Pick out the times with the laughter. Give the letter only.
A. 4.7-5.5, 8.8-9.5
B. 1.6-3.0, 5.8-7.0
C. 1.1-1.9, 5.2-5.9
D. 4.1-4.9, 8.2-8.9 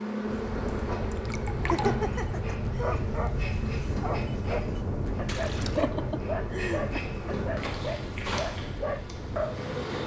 B.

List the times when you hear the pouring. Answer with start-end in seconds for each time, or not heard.
1.1-1.9, 5.2-5.9.